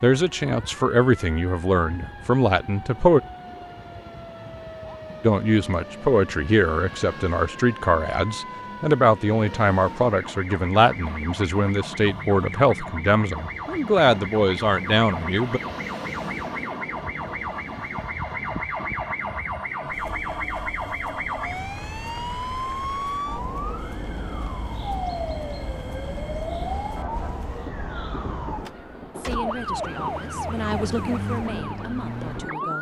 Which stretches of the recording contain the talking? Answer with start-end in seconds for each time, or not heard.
0.0-3.2, 5.2-15.6, 29.1-32.7.